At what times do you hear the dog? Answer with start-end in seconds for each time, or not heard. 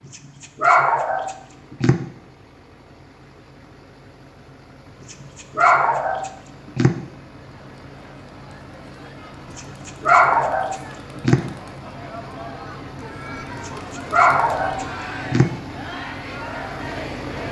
0.1-2.0, 5.1-7.0, 9.6-11.4, 13.7-15.5.